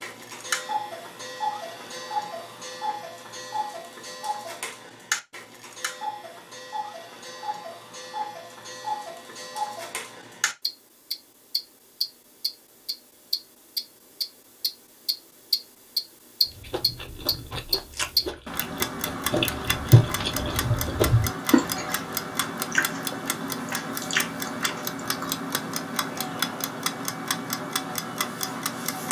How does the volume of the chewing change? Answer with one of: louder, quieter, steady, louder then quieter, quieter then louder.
louder then quieter.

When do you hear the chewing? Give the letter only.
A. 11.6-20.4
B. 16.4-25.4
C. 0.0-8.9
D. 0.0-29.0
B.